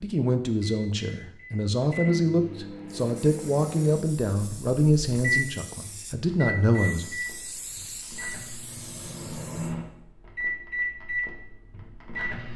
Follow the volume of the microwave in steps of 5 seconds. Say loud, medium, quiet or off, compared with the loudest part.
medium, loud, loud.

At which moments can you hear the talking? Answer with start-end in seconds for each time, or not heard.
0.0-7.0.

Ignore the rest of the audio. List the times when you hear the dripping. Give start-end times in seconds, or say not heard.
not heard.